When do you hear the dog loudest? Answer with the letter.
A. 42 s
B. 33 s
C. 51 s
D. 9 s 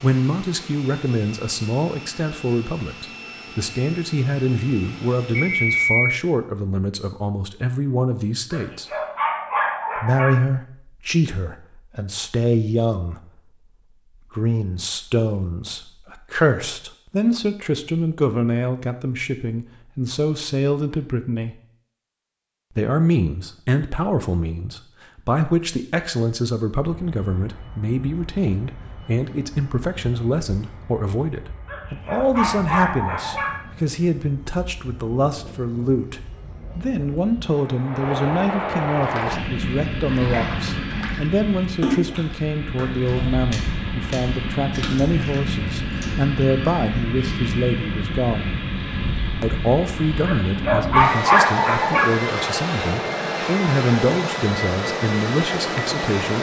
C.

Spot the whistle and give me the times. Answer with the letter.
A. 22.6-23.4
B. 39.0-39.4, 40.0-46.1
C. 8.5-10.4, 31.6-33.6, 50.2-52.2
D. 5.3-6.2
D.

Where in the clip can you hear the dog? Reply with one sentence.
The dog can be heard from 8.5 to 10.4 s, from 31.6 to 33.6 s and from 50.2 to 52.2 s.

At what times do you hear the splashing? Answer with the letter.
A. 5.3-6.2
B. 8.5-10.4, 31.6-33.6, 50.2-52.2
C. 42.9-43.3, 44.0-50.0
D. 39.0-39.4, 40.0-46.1
D.